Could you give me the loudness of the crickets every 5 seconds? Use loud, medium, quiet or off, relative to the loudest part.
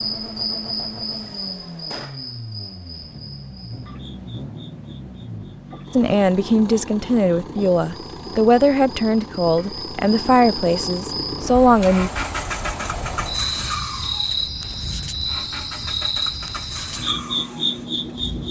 medium, quiet, loud, loud.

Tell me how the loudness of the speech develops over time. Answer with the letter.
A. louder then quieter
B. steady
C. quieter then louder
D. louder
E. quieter
B.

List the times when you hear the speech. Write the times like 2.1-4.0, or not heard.
6.0-12.1.